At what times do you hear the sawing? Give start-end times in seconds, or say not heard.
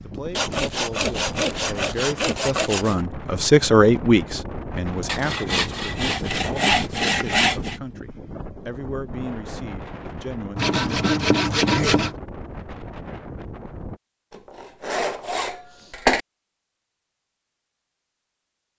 0.3-3.0, 5.0-7.8, 10.6-12.2, 14.6-16.2.